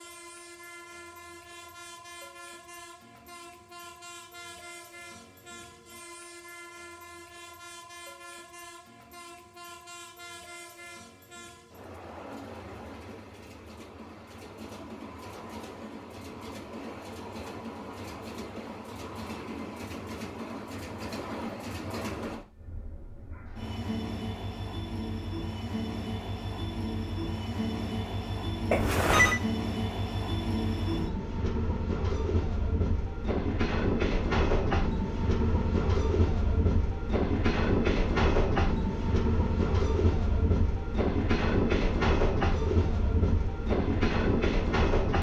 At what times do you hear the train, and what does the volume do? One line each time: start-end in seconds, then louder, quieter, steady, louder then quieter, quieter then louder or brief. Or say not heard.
0.0-45.1 louder.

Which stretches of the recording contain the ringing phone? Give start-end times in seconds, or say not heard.
28.7-29.4.